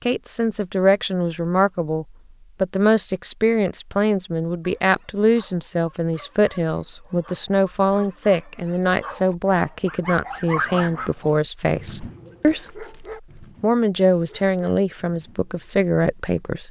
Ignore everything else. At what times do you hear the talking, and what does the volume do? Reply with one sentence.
You can hear the talking from 0.0 to 16.6 s, at a steady volume.